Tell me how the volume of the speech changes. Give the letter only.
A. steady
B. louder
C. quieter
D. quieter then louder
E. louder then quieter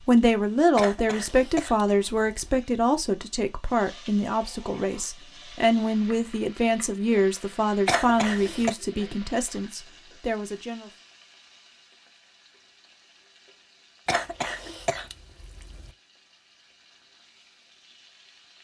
C.